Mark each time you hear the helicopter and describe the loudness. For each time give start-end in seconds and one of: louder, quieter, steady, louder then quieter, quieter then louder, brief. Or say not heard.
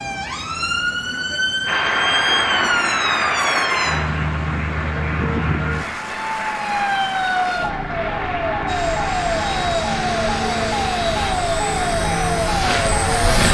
8.7-13.4 louder.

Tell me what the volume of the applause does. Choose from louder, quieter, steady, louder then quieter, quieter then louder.
quieter.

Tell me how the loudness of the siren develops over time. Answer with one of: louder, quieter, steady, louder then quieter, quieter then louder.
steady.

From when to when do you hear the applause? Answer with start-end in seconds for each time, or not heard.
1.6-13.2.